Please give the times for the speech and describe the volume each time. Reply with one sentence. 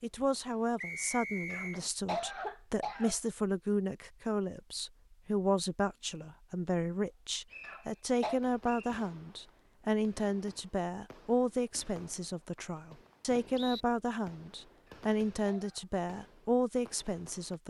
The speech can be heard from 0.0 to 17.6 s, at a steady volume.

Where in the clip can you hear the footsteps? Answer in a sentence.
You can't hear the footsteps here.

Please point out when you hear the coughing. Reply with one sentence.
You can hear the coughing from 1.5 to 3.1 s, from 7.6 to 8.4 s and from 14.8 to 15.8 s.